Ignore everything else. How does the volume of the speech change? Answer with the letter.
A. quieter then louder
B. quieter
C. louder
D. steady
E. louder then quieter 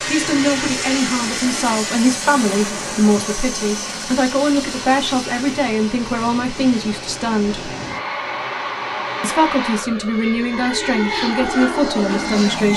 D.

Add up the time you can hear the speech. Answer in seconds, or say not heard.
11 s.